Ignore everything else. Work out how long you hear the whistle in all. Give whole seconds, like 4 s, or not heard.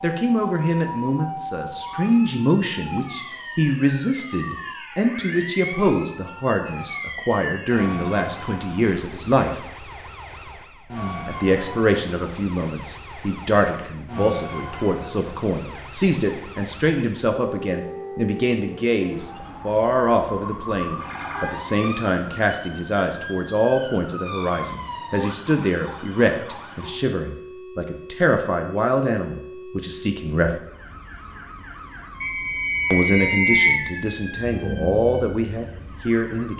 2 s.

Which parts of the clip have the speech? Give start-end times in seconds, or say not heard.
0.0-9.6, 11.2-30.6, 32.9-36.5.